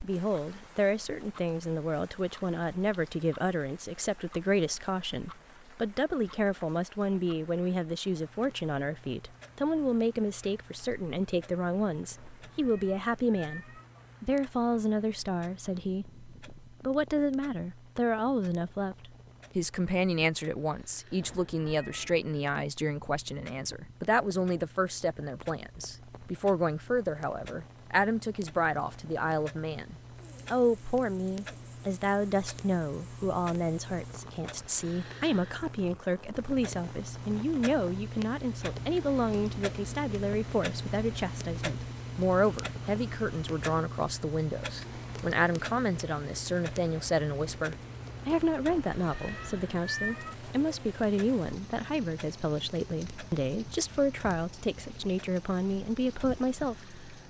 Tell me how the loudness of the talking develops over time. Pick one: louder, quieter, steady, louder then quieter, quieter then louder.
steady.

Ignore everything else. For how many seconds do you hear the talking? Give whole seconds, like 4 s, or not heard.
57 s.